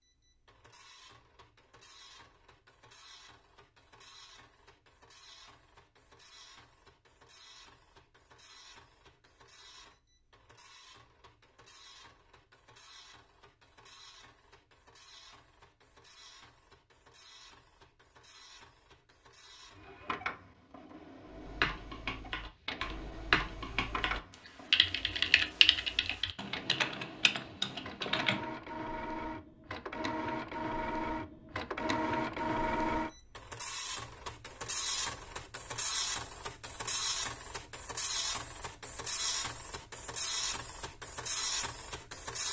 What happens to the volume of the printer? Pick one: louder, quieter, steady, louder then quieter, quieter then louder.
louder.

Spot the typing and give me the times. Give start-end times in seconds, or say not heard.
21.4-28.4.